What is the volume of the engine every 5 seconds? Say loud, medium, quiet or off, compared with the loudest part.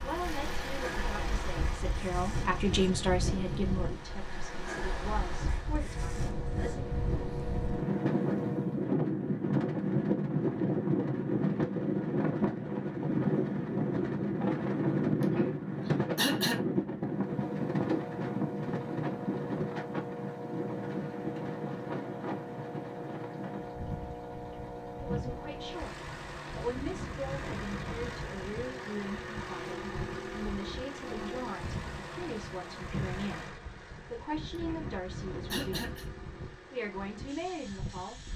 loud, loud, off, loud, loud, loud, loud, medium.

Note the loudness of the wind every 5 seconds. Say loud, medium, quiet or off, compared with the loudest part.
medium, loud, loud, loud, medium, quiet, quiet, quiet.